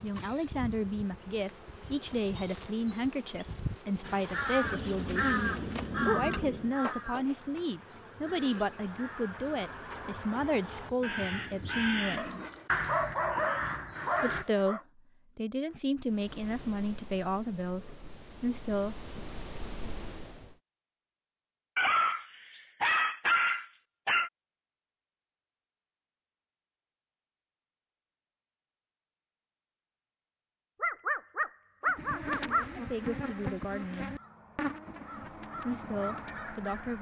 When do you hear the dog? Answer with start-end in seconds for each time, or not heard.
4.6-6.8, 12.2-14.8, 21.8-24.3, 30.8-32.7.